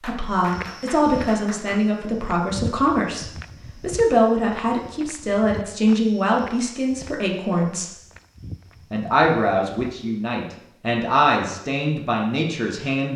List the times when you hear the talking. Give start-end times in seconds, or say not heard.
0.0-8.0, 8.9-13.1.